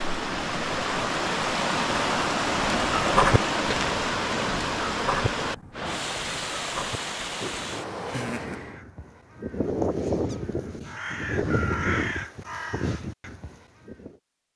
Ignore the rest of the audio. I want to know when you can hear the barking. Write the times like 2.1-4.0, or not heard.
not heard.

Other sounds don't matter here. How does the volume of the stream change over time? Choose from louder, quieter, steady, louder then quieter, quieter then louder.
quieter.